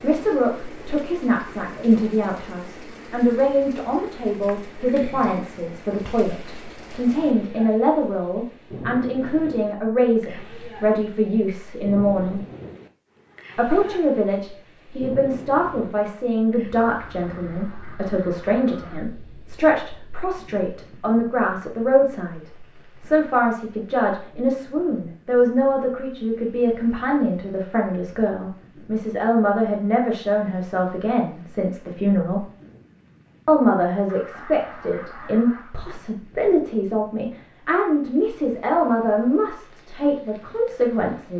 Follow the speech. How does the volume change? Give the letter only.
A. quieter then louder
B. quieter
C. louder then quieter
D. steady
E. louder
D.